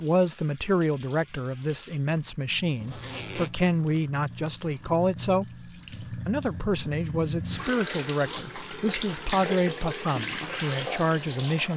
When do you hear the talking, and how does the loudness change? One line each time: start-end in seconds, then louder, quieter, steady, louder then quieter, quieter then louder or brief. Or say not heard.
0.0-11.7 steady.